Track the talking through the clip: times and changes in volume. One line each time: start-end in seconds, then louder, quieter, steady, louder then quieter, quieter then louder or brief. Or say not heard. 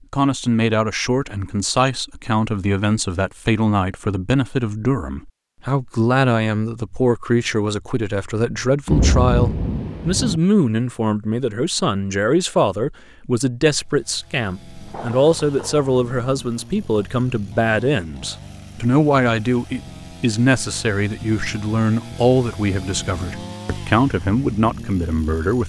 0.1-25.6 steady.